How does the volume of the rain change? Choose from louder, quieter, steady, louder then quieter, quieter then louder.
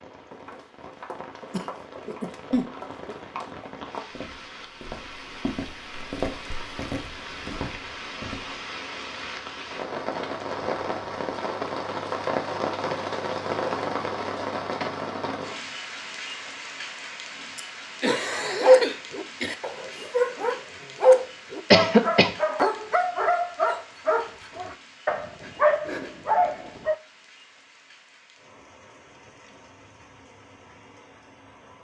louder then quieter.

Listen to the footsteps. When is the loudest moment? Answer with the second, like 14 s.
6 s.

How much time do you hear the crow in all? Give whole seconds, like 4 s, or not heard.
not heard.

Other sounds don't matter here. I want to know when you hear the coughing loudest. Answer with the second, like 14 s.
22 s.